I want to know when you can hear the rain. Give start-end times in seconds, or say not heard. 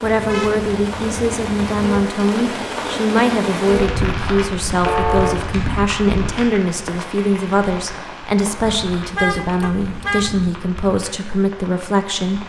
0.0-12.4.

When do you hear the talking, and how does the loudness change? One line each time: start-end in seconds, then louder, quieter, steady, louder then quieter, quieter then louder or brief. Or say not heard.
0.0-12.4 steady.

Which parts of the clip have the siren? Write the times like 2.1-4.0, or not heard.
not heard.